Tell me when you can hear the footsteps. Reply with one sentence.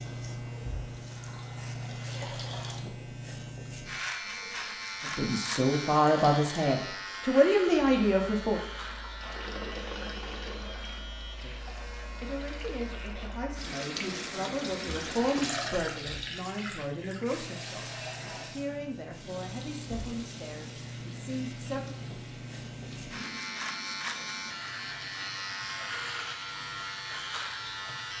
You can't hear the footsteps here.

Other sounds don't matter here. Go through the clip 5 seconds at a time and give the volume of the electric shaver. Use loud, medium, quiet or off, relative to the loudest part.
loud, loud, medium, medium, loud, loud.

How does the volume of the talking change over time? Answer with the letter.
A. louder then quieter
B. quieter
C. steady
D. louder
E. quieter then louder
B.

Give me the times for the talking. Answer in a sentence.
The talking can be heard from 5.0 to 8.6 s and from 11.4 to 21.9 s.